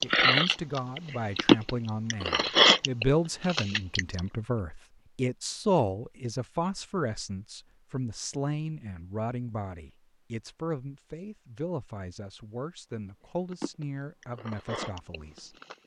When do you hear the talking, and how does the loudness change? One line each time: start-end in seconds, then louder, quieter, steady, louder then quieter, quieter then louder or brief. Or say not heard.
0.0-15.6 quieter.